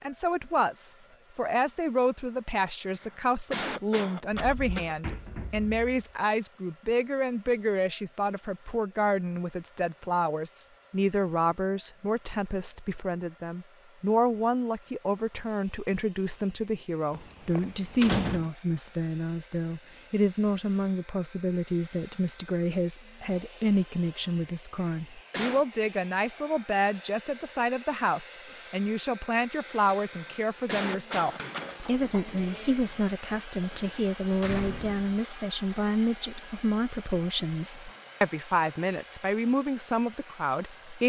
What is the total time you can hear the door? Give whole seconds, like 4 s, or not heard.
4 s.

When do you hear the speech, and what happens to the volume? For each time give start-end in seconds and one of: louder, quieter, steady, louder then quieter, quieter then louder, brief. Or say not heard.
0.0-41.0 steady.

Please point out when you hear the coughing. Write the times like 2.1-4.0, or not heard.
3.0-5.2, 24.8-25.6, 30.1-31.8.